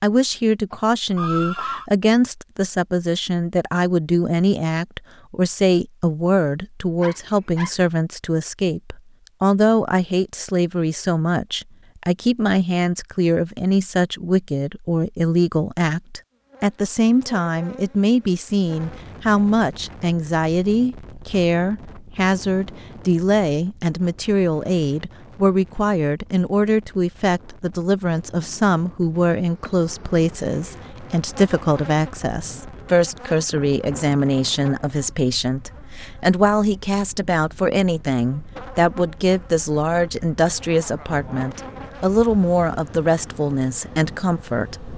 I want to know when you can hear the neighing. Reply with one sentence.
The neighing can be heard from 0.7 to 1.9 s.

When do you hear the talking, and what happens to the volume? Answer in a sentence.
You can hear the talking from 0.0 to 44.9 s, at a steady volume.